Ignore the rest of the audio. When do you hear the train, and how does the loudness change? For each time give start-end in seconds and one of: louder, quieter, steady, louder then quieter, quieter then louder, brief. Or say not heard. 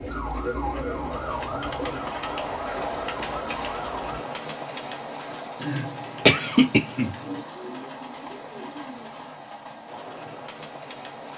0.0-11.3 quieter.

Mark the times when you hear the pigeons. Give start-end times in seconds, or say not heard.
0.3-2.1, 7.2-9.3.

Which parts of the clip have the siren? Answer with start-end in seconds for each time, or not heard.
0.0-4.2.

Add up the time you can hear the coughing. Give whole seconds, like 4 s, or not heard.
2 s.